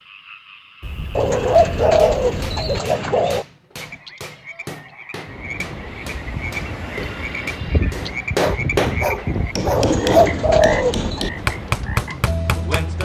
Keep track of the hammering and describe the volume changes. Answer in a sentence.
The volume of the hammering goes up.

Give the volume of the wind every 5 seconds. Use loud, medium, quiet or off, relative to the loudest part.
off, loud, medium.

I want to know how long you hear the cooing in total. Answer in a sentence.
You can hear the cooing for 4 seconds altogether.